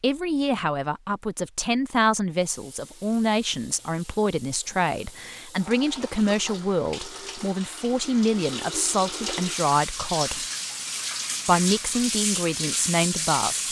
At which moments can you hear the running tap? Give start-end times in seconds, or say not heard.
2.4-13.6.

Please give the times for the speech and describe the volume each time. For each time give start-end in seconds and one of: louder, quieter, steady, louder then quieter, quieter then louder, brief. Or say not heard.
0.0-10.4 steady
11.4-13.6 brief.